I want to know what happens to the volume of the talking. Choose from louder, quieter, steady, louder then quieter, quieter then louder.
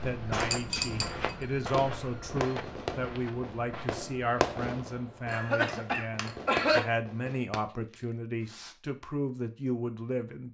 steady.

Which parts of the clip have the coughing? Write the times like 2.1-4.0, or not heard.
0.3-1.0, 5.3-6.8.